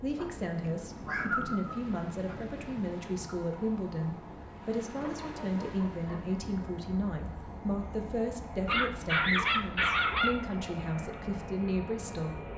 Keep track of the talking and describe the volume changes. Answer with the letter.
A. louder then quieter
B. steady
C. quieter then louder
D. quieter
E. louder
B.